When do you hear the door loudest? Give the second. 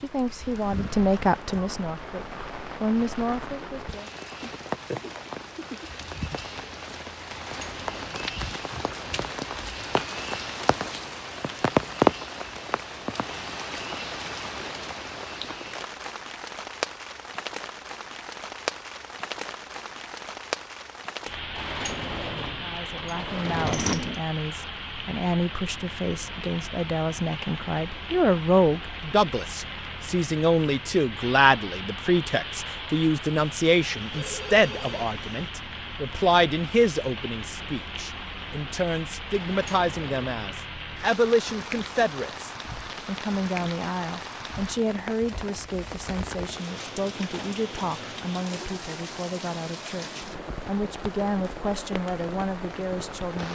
24 s.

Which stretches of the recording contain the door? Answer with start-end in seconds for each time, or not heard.
7.3-9.3, 21.6-24.2, 39.4-40.3.